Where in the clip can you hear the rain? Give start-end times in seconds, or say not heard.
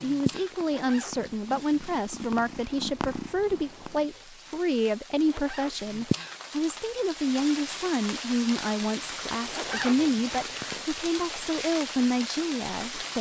0.0-13.1.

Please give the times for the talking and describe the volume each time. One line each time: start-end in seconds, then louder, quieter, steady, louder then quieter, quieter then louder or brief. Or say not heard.
0.0-13.1 steady.